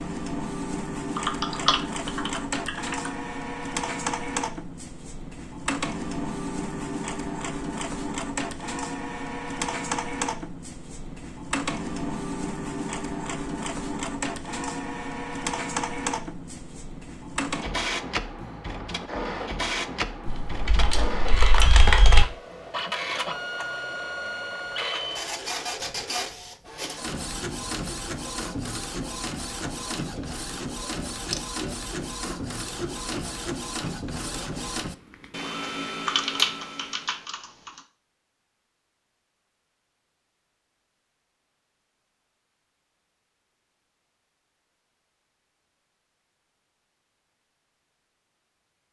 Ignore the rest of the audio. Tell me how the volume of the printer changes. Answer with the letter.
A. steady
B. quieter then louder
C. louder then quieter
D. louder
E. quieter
A.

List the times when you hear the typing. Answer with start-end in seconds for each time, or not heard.
1.1-3.1, 20.2-22.2, 36.0-37.7.